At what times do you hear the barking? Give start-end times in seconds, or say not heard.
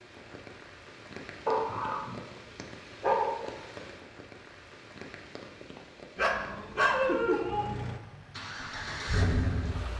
1.4-3.5, 6.2-7.8.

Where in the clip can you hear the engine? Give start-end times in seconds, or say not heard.
7.3-9.9.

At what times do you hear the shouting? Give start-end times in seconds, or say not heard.
not heard.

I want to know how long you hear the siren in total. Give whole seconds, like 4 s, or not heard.
not heard.